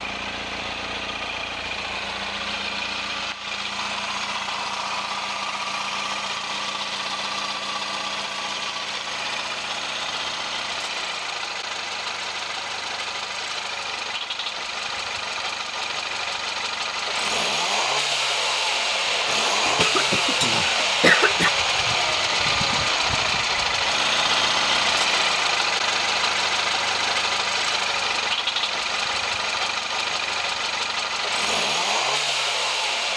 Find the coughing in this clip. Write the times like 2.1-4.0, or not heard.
19.6-21.5.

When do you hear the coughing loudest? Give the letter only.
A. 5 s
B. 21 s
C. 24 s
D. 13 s
B.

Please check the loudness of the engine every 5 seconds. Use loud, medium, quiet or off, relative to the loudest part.
medium, medium, medium, loud, loud, loud, loud.